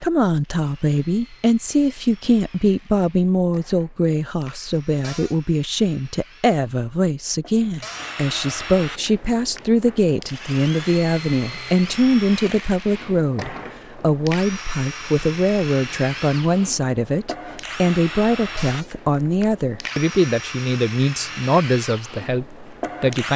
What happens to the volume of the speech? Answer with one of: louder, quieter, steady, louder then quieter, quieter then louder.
steady.